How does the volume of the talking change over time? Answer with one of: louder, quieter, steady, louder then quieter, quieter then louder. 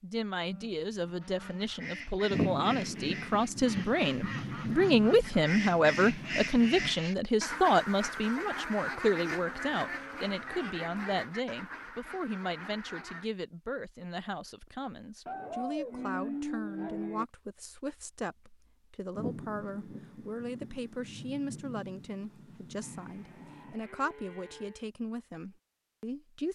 quieter.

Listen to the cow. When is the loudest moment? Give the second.
16 s.